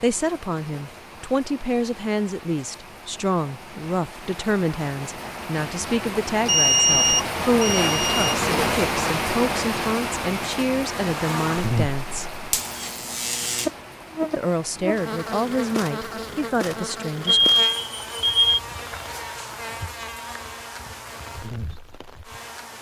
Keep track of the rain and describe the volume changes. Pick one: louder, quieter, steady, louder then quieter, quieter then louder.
louder then quieter.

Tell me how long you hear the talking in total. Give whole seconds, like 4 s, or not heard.
15 s.